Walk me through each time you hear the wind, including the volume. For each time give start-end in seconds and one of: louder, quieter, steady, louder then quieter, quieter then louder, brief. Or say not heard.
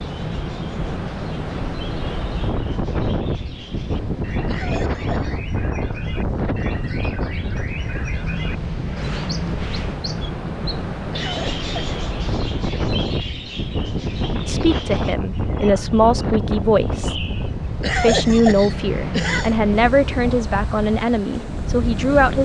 0.0-22.4 steady.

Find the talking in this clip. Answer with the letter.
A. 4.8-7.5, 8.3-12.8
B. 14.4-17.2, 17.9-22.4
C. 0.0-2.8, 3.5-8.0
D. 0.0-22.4
B.